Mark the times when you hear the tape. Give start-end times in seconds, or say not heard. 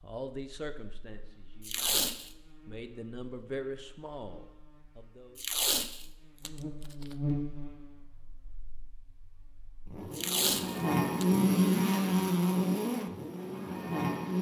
1.6-2.3, 5.3-7.2, 10.1-11.2.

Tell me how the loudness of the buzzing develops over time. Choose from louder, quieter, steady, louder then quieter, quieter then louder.
louder.